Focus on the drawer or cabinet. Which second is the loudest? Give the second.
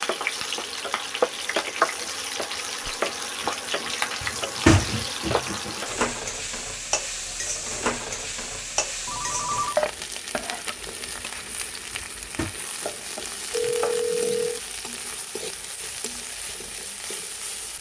5 s.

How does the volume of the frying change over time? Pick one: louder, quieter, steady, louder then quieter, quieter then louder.
quieter.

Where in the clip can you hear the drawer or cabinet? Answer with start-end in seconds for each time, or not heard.
4.2-5.8, 11.9-12.6.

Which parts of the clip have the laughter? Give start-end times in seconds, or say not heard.
not heard.